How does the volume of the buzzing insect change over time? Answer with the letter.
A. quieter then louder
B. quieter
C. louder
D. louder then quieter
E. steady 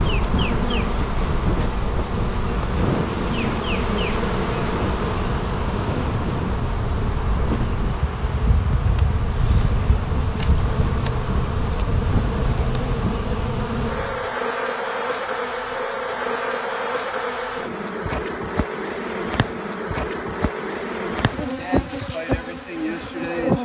E.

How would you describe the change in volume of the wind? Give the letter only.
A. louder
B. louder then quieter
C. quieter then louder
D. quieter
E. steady
E.